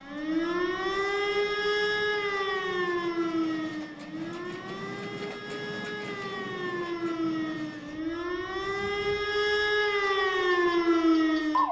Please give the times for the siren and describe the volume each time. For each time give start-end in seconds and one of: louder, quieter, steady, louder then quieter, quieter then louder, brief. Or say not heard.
0.0-11.6 quieter then louder.